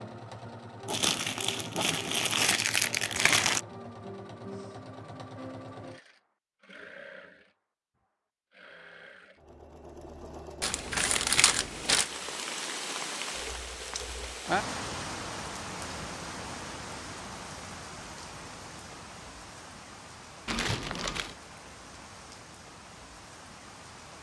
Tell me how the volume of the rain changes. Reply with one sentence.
The volume of the rain goes down.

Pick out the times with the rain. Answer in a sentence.
The rain can be heard from 11.4 to 24.1 s.